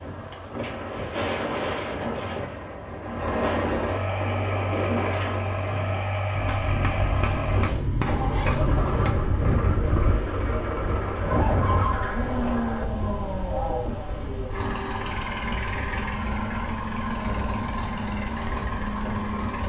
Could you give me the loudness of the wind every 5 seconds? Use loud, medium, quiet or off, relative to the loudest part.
loud, loud, loud, medium.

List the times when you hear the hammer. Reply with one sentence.
The hammer can be heard from 6.3 to 9.2 s.